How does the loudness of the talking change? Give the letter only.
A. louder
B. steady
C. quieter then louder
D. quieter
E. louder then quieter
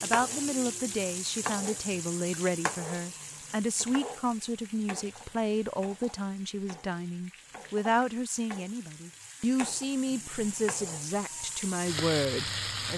B.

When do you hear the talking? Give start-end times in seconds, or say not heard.
0.0-12.9.